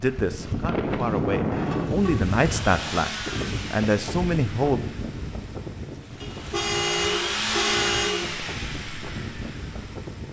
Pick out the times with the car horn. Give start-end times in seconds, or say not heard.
1.5-3.0, 6.2-8.2.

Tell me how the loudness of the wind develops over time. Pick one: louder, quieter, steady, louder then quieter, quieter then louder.
quieter.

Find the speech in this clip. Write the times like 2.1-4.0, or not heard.
0.0-4.8.